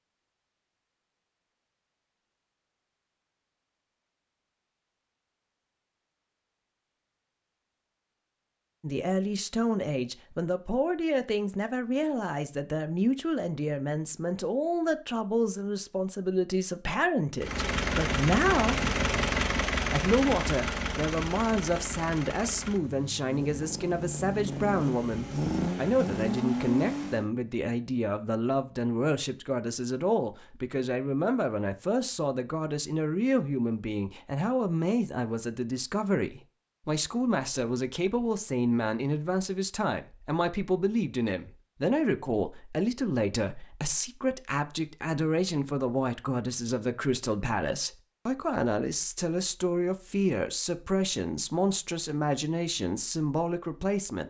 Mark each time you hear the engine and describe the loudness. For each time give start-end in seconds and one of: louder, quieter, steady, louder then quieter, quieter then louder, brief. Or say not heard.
17.4-27.3 quieter then louder.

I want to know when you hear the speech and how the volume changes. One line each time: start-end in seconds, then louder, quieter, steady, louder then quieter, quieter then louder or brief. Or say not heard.
8.8-18.8 steady
19.9-54.2 steady.